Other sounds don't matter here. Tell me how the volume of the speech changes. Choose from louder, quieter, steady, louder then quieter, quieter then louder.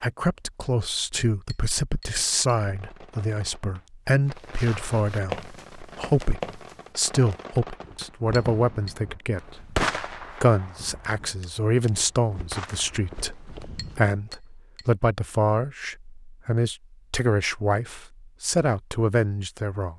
steady.